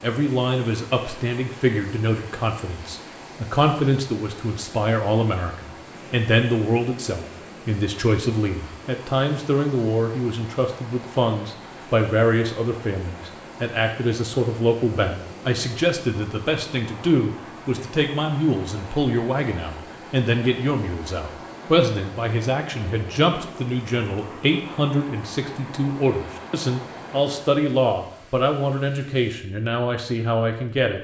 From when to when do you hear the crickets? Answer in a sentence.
You can't hear the crickets here.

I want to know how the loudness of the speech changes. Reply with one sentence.
The volume of the speech stays about the same.